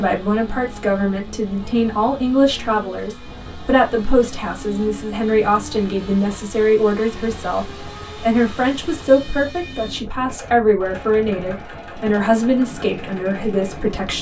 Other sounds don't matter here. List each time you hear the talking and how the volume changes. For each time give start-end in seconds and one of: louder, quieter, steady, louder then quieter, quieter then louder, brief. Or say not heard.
0.0-14.1 steady.